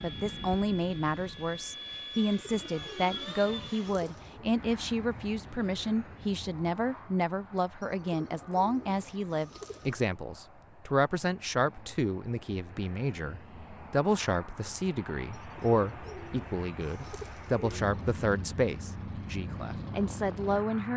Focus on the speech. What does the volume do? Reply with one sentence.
The volume of the speech stays about the same.